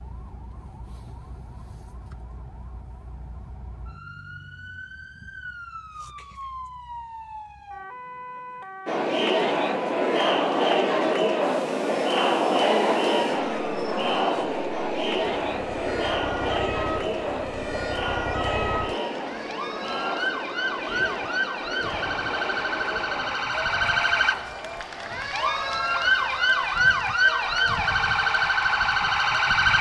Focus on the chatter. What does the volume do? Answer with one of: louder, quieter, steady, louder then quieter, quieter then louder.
quieter.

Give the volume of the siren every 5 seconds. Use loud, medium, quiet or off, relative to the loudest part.
quiet, quiet, quiet, quiet, medium, loud.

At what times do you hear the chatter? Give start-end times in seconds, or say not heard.
8.8-29.7.